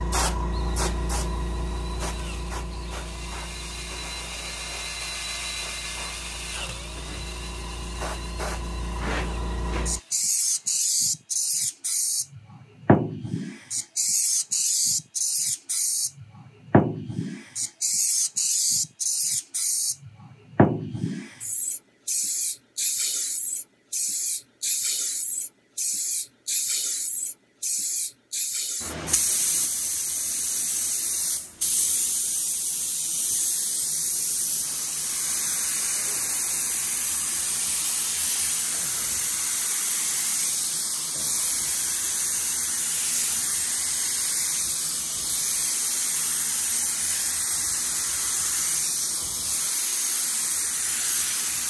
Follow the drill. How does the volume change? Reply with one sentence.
The volume of the drill goes up, then down.